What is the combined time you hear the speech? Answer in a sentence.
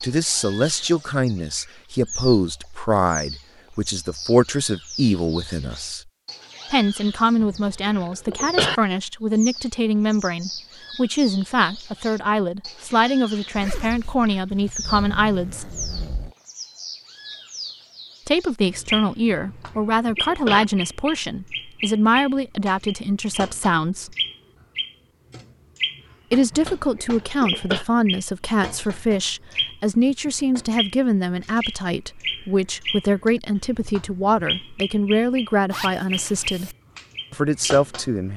The speech can be heard for 33 seconds in total.